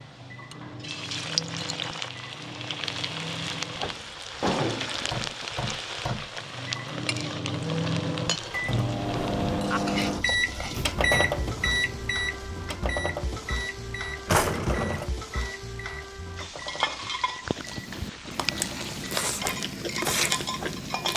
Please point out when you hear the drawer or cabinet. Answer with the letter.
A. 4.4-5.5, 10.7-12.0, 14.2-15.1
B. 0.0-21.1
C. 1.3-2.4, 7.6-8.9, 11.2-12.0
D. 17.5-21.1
A.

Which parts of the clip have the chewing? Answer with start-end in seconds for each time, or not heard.
17.5-21.1.